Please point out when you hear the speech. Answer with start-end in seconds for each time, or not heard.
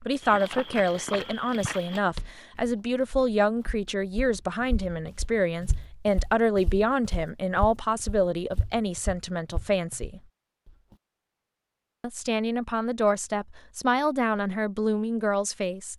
0.0-10.2, 12.0-15.9.